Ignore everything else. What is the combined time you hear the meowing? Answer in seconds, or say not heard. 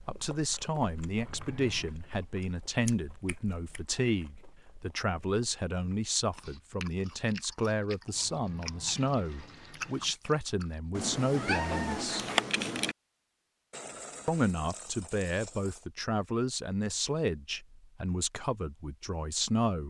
2 s.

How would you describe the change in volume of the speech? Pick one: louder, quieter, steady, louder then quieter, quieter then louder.
steady.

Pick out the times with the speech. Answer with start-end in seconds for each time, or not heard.
0.1-12.2, 14.2-19.8.